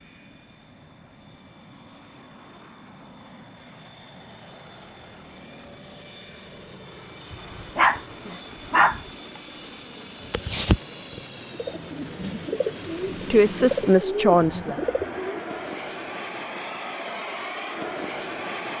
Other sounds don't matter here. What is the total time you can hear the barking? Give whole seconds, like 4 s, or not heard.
2 s.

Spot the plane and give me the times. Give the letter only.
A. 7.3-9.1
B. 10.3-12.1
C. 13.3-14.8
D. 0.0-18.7
D.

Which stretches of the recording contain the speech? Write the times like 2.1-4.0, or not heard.
13.3-14.8.